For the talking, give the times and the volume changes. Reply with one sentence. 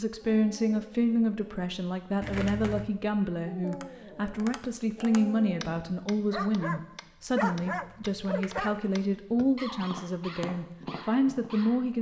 The talking can be heard from 0.0 to 11.9 s, at a steady volume.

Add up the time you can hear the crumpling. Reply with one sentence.
The crumpling can be heard for 2 seconds in total.